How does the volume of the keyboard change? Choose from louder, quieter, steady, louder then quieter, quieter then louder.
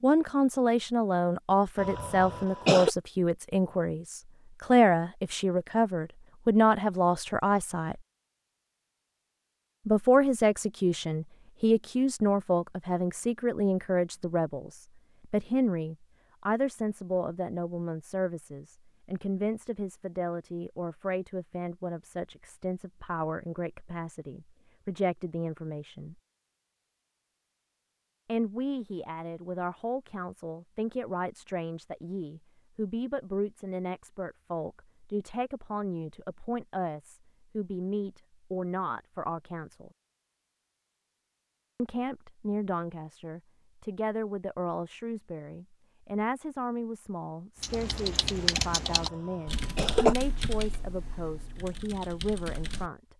quieter then louder.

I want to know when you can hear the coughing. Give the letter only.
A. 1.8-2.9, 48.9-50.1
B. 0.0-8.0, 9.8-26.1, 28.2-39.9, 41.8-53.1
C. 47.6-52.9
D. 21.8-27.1
A.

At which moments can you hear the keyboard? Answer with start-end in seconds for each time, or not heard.
47.6-52.9.